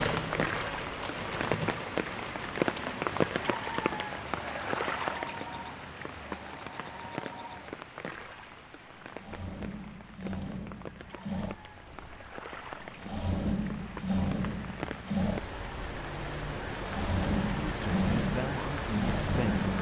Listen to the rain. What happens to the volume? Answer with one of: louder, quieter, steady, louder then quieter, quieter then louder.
quieter then louder.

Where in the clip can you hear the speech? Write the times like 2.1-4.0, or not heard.
17.5-19.7.